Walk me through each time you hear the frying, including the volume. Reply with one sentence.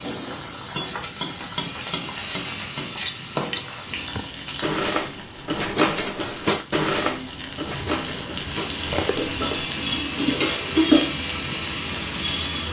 The frying can be heard from 0.0 to 12.6 s, getting quieter then louder.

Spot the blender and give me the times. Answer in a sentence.
You can hear the blender from 1.8 to 4.0 s and from 8.6 to 12.6 s.